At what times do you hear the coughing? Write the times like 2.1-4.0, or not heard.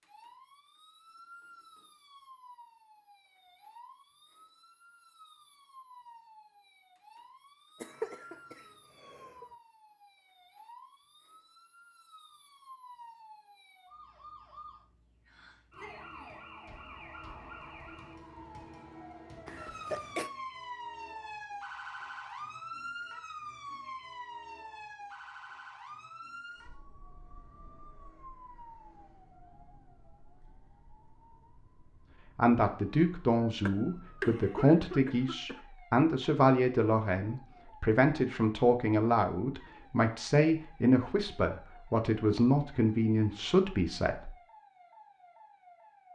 7.8-9.4, 19.4-20.3, 33.6-35.6.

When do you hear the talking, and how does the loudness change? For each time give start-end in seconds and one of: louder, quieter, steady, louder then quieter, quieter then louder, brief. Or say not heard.
32.4-44.3 steady.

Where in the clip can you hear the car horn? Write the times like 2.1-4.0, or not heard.
not heard.